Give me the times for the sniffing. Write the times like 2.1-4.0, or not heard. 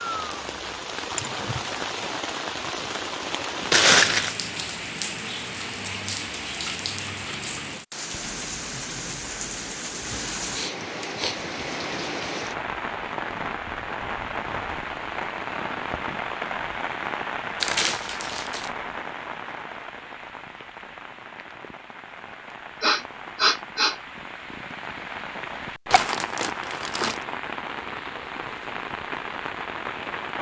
1.1-1.6, 10.5-11.3, 22.8-23.9.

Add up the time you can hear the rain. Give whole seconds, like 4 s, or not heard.
30 s.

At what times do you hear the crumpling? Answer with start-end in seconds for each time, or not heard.
3.7-4.3, 17.6-18.7, 25.9-27.2.